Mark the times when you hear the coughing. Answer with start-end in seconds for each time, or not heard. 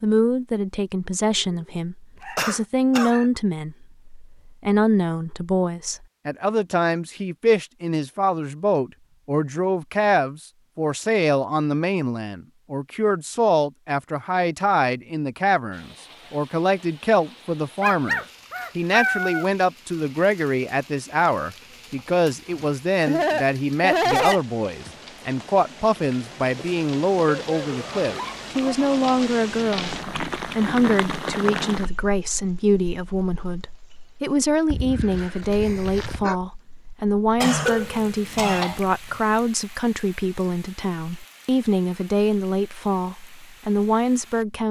2.4-3.1, 22.6-24.4, 37.4-38.8.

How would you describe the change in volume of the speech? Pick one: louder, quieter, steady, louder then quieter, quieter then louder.
steady.